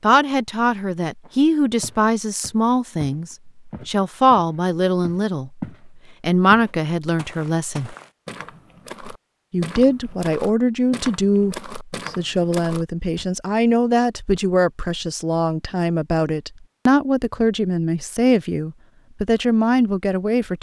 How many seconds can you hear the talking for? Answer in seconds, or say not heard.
19 s.